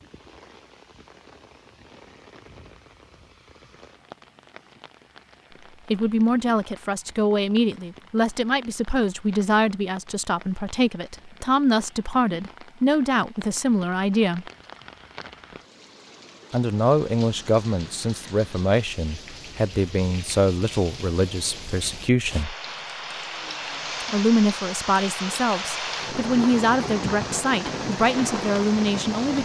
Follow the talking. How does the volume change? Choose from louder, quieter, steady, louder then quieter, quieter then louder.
steady.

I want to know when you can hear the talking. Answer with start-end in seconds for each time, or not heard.
5.9-14.4, 16.5-22.6, 24.0-29.4.